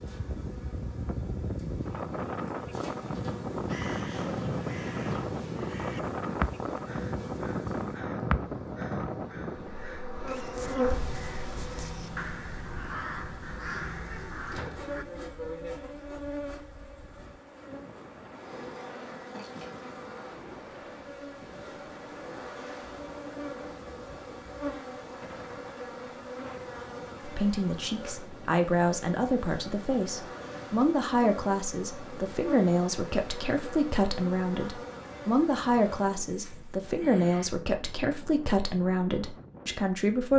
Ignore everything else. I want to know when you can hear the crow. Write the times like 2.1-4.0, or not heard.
3.6-15.1.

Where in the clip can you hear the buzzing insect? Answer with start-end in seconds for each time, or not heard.
0.0-37.5.